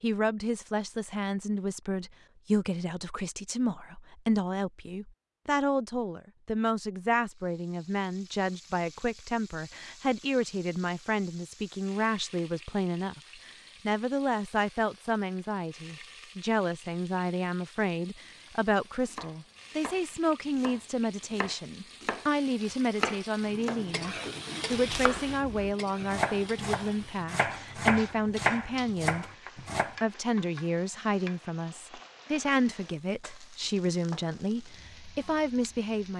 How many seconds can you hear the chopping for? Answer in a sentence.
You can hear the chopping for 11 seconds altogether.